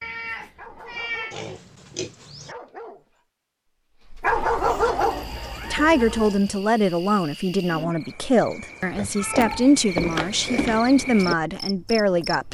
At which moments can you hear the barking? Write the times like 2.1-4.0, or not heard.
0.4-1.6, 2.4-3.2, 4.0-5.3.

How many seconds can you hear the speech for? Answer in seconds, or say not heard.
7 s.